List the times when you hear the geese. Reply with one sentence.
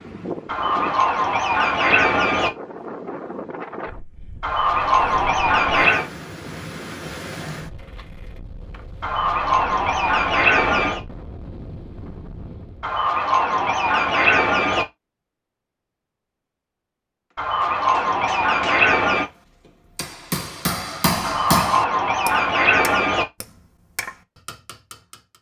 The geese can be heard from 0.5 to 2.5 s, from 4.4 to 6.1 s, from 9.0 to 11.0 s, from 12.8 to 14.8 s, from 17.4 to 19.2 s and from 21.2 to 23.2 s.